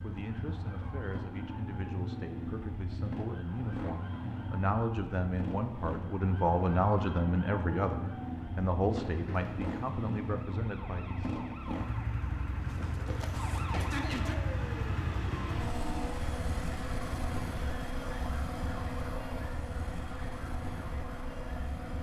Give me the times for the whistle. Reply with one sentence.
You can't hear the whistle here.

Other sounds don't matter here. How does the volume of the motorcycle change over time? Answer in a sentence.
The volume of the motorcycle stays about the same.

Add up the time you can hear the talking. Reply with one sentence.
You can hear the talking for 11 seconds altogether.